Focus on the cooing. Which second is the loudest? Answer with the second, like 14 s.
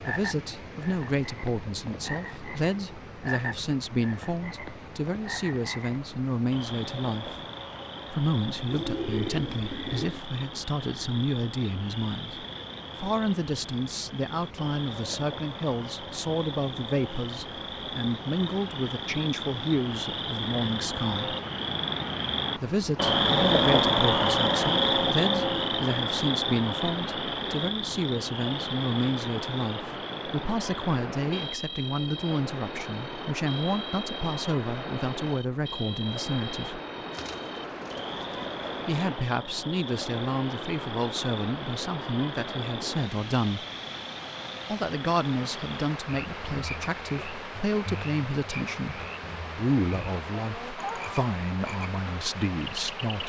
9 s.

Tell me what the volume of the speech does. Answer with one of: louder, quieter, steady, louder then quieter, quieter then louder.
steady.